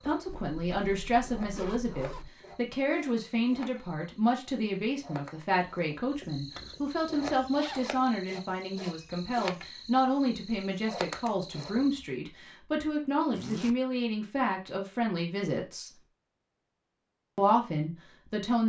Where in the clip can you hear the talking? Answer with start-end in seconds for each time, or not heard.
0.0-15.9, 17.4-18.6.